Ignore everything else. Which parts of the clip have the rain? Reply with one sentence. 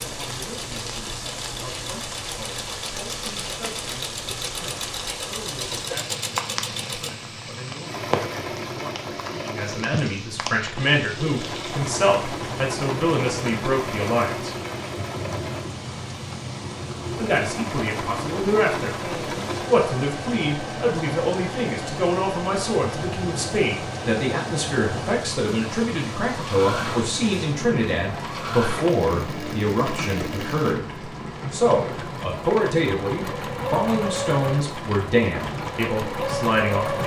You can hear the rain from 0.0 to 37.0 s.